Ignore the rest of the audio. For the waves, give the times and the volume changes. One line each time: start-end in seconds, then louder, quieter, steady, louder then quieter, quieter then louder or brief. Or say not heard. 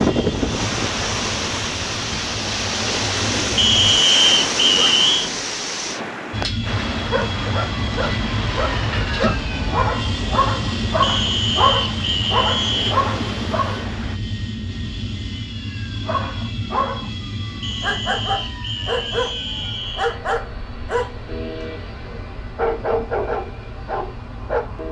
0.0-14.2 quieter.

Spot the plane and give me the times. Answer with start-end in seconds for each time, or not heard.
0.0-4.0, 6.3-24.8.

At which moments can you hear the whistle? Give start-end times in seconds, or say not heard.
3.5-5.3, 11.0-12.9, 17.6-20.2.